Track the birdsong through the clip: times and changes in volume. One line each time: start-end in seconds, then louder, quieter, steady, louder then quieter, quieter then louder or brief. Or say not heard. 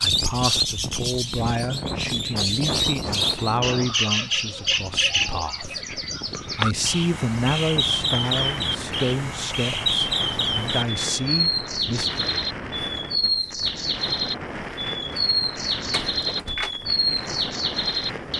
0.0-18.3 steady.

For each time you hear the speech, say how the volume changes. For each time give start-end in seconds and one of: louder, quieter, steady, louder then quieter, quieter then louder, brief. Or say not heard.
0.0-12.2 steady.